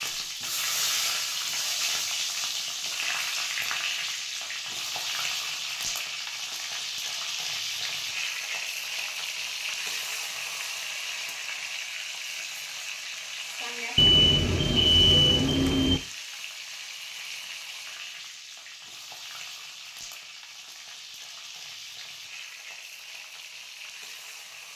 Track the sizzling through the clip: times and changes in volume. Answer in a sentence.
The sizzling can be heard from 0.0 to 24.7 s, getting quieter.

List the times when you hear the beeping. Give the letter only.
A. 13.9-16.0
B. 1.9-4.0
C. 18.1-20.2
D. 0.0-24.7
A.